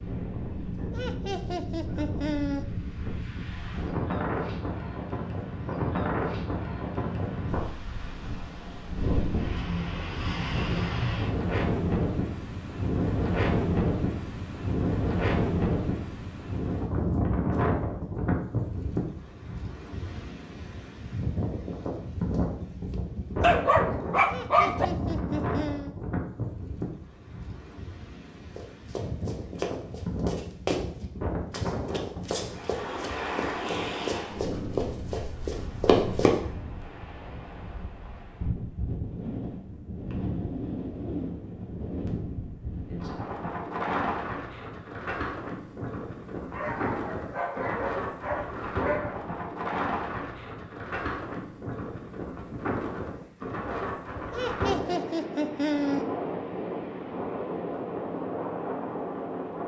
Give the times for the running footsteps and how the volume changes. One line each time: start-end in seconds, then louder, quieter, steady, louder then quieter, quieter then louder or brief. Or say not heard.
28.6-30.9 brief
31.5-36.4 louder.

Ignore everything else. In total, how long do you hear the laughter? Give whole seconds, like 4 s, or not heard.
5 s.